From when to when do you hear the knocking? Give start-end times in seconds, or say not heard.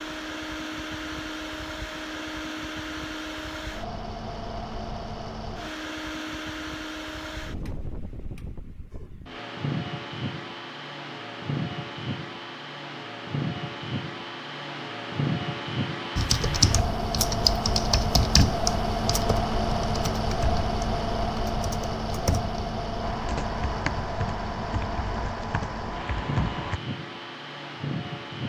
not heard.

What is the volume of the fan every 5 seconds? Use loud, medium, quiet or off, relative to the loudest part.
medium, medium, medium, loud, loud, medium.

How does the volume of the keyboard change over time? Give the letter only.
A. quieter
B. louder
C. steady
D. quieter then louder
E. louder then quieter
A.